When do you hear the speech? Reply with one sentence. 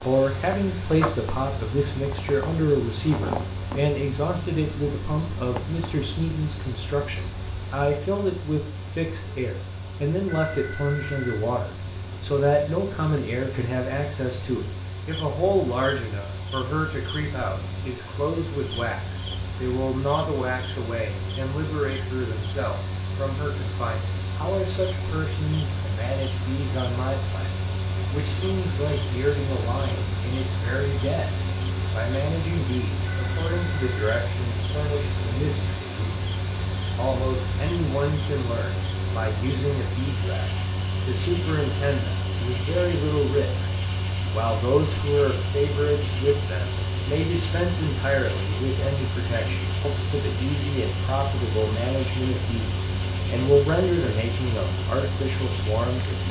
The speech can be heard from 0.1 to 36.1 s, from 36.9 to 43.7 s and from 44.3 to 56.2 s.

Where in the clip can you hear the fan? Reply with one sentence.
The fan can be heard from 0.0 to 56.2 s.